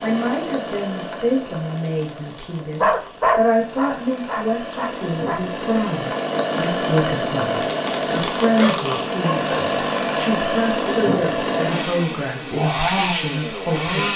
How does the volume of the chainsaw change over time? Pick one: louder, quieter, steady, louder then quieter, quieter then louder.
louder.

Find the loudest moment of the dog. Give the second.
3 s.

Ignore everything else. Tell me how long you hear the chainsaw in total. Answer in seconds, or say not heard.
14 s.